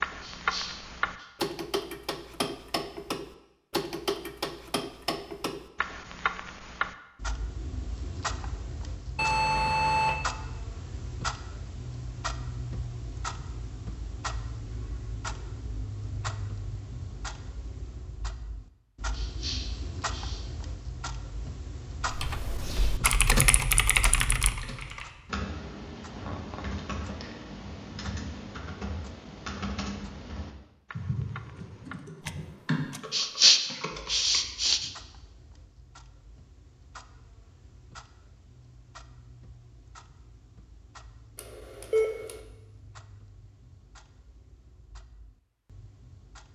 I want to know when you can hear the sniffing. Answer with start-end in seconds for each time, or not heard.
0.2-1.2, 19.1-20.4, 33.1-34.9.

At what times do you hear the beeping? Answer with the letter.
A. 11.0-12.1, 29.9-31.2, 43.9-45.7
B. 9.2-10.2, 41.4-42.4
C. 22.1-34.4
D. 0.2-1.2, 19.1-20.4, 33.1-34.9
B.